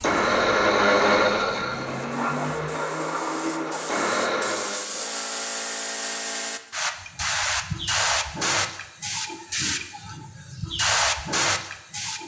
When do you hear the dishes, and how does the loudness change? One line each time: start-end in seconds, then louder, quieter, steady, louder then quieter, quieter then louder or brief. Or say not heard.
not heard.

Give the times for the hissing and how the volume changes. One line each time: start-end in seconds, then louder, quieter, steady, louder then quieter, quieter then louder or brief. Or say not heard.
0.0-12.2 louder.